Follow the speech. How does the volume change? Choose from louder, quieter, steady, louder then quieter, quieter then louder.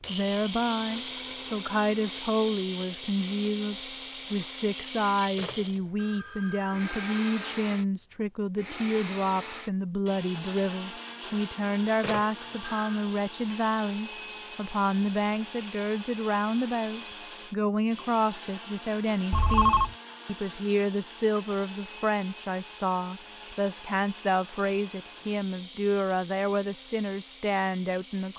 steady.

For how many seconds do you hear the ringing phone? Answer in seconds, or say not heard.
4 s.